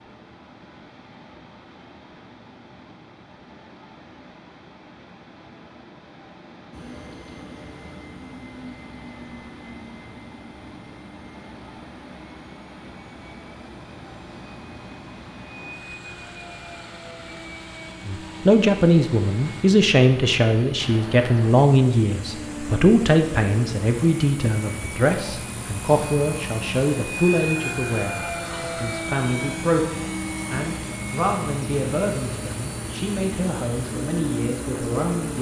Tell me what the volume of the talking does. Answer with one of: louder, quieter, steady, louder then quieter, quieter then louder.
quieter.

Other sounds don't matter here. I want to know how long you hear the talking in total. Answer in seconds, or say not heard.
17 s.